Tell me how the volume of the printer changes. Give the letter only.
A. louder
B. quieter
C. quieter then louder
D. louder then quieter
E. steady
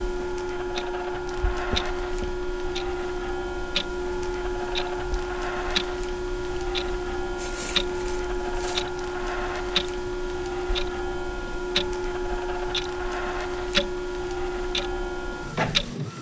E.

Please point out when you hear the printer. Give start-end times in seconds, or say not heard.
0.0-16.1.